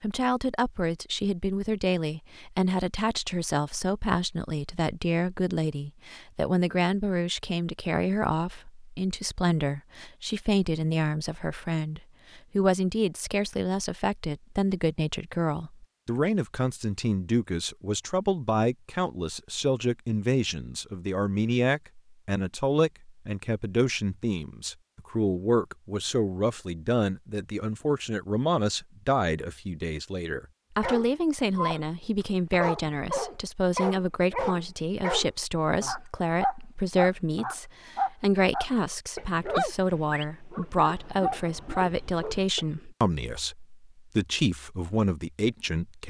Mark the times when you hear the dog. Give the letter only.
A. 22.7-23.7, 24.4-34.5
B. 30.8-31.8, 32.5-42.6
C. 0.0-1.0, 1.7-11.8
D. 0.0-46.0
B.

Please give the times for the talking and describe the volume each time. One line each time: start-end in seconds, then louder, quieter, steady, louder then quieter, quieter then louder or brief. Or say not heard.
0.0-46.0 steady.